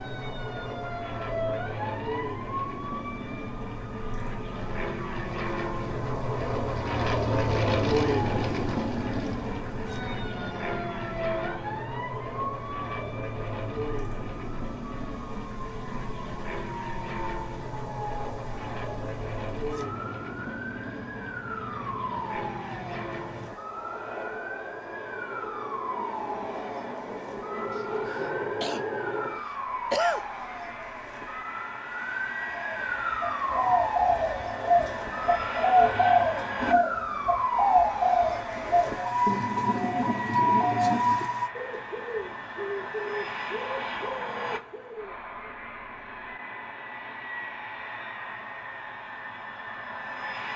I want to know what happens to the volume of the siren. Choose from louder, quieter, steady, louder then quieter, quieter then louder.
louder.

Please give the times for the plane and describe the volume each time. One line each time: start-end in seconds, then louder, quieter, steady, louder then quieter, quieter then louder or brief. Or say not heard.
0.0-50.5 quieter.